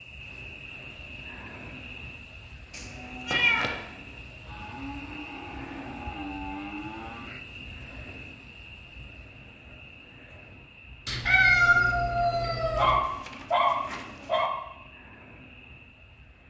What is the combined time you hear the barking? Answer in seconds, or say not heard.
2 s.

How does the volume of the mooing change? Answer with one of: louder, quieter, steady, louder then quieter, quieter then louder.
louder.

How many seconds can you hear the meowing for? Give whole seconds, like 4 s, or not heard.
3 s.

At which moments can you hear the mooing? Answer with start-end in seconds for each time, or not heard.
2.8-7.3.